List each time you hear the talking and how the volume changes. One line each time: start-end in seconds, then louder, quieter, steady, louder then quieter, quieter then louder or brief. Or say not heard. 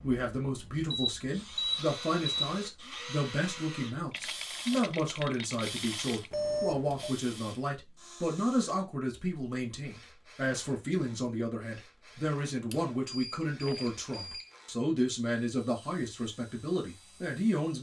0.0-17.7 steady.